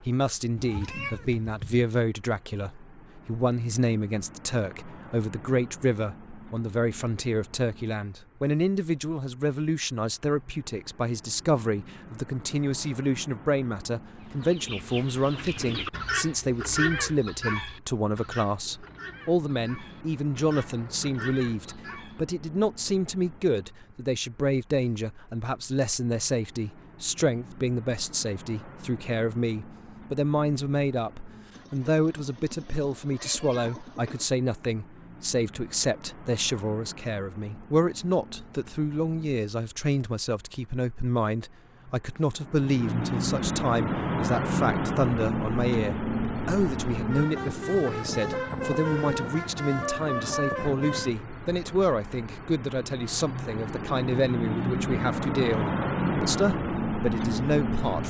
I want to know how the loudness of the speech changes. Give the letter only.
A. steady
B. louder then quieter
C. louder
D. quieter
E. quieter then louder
A.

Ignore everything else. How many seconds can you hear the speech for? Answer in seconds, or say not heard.
58 s.